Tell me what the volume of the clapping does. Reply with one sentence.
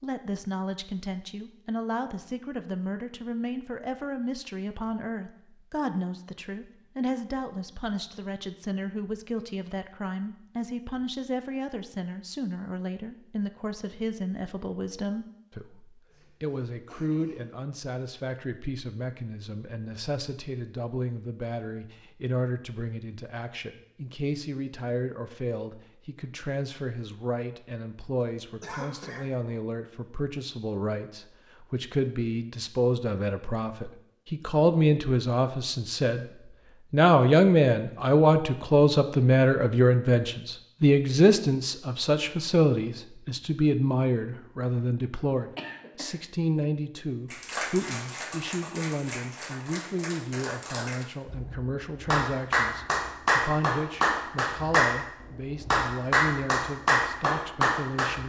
The loudness of the clapping goes up.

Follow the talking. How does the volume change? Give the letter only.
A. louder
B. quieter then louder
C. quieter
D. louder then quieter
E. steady
D.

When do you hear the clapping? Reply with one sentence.
You can hear the clapping from 47.3 to 58.2 s.